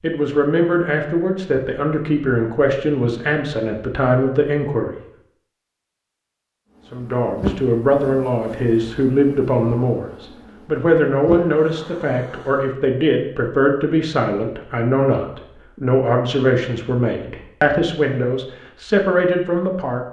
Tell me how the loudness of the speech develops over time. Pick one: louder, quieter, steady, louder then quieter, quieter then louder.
steady.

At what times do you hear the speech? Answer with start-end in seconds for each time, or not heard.
0.0-4.9, 6.9-20.0.